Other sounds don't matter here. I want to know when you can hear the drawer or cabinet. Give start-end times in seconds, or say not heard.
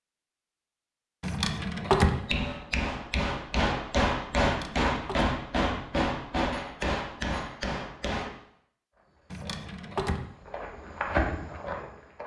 1.2-2.1, 4.4-5.3, 9.3-10.2.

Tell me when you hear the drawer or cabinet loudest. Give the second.
2 s.